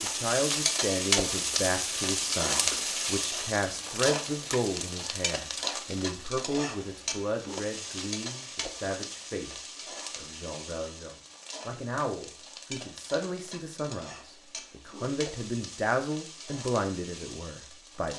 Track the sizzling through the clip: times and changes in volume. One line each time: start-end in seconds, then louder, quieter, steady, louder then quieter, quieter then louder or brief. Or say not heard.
0.0-18.1 quieter.